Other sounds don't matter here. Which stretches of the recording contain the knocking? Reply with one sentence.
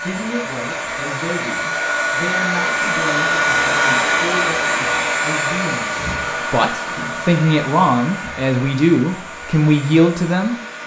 You can't hear the knocking here.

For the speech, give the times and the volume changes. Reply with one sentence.
The speech can be heard from 0.0 to 10.6 s, getting louder.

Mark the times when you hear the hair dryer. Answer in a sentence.
You can hear the hair dryer from 0.0 to 10.8 s.